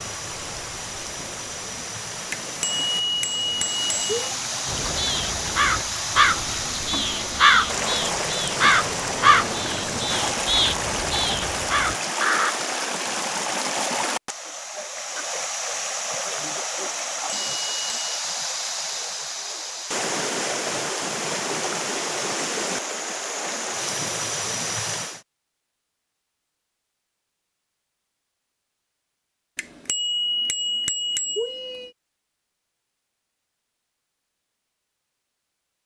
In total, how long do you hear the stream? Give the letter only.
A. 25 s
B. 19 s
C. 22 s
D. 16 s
A.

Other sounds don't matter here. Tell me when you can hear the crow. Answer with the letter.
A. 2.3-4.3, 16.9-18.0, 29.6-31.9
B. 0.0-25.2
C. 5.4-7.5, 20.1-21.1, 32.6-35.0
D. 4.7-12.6
D.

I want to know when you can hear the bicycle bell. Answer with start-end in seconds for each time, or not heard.
2.3-4.3, 16.9-18.0, 29.6-31.9.